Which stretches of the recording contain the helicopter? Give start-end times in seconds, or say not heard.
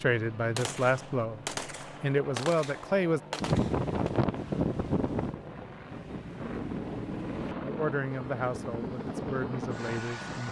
0.0-10.4.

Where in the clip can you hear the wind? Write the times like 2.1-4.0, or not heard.
3.4-10.4.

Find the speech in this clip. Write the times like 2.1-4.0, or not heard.
0.0-3.2, 7.6-10.4.